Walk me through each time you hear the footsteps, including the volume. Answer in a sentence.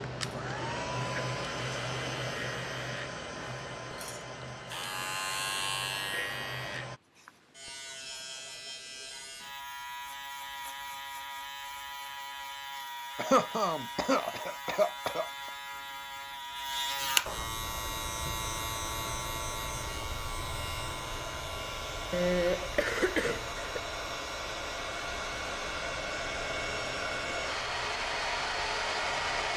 You can't hear the footsteps here.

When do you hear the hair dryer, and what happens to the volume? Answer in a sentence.
The hair dryer can be heard from 0.0 to 7.0 s, getting quieter; and from 17.6 to 29.5 s, getting louder.